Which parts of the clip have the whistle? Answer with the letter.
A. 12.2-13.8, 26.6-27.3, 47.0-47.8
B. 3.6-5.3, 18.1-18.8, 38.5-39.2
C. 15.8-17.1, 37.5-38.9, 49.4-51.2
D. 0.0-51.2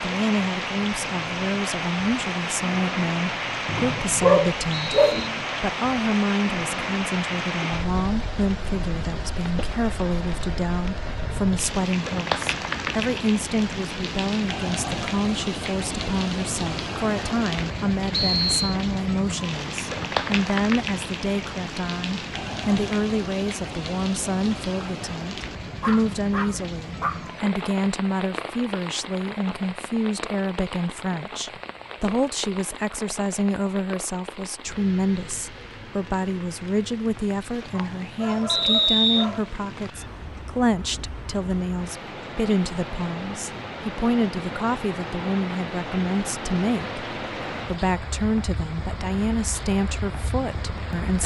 B.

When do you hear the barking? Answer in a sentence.
The barking can be heard from 4.2 to 5.4 s, from 25.8 to 27.2 s and from 37.7 to 39.5 s.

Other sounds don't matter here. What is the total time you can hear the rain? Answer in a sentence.
The rain can be heard for 51 seconds in total.